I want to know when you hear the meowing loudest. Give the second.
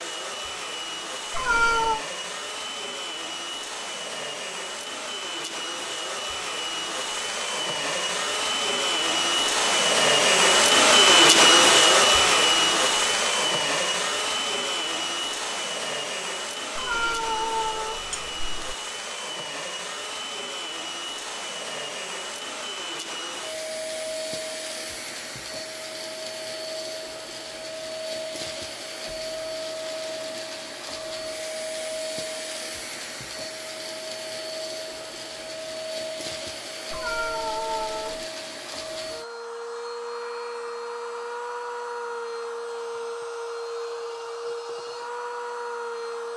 2 s.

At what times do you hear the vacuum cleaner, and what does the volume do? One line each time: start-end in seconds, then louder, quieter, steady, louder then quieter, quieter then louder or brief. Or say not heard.
0.0-46.3 louder then quieter.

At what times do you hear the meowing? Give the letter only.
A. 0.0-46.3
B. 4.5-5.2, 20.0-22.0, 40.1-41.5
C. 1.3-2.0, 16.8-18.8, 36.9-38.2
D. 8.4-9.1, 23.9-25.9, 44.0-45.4
C.